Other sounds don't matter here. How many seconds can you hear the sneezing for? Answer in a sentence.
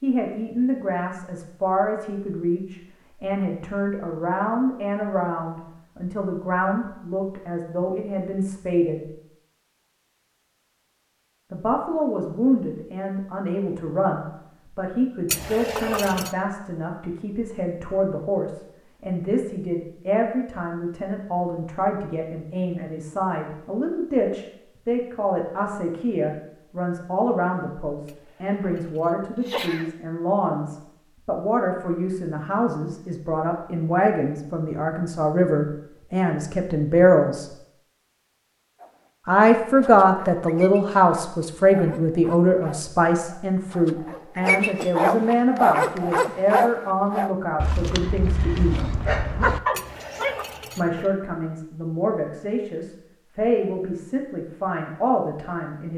The sneezing can be heard for 4 seconds in total.